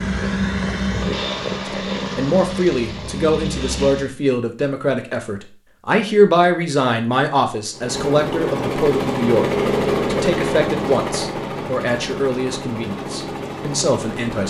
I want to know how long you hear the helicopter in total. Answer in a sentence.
The helicopter can be heard for 11 seconds in total.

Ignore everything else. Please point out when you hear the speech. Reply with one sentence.
The speech can be heard from 1.6 to 9.4 s and from 10.1 to 14.4 s.